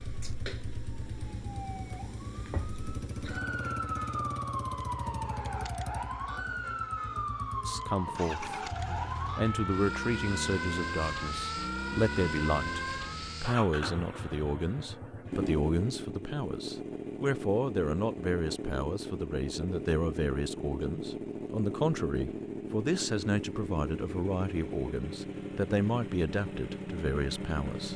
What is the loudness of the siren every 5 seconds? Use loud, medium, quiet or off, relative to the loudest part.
loud, loud, loud, off, off, off.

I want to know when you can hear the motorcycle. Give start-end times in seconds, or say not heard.
0.0-27.9.